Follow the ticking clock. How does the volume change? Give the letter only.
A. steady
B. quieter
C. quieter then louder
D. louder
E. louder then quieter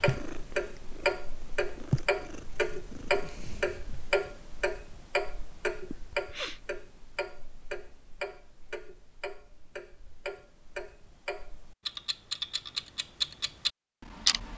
C.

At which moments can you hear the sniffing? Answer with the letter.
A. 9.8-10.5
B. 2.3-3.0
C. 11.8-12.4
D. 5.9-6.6
D.